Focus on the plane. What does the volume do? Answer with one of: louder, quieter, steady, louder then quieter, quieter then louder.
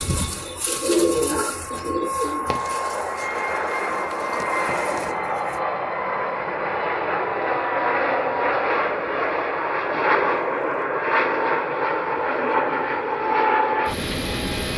louder.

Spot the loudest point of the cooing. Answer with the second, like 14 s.
1 s.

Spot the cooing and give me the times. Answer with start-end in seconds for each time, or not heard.
0.0-5.6.